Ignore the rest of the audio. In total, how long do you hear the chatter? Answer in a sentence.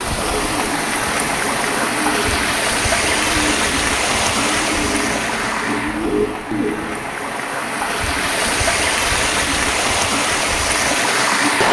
The chatter can't be heard in this clip.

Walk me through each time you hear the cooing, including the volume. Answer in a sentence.
The cooing can be heard from 0.0 to 7.1 s, getting louder.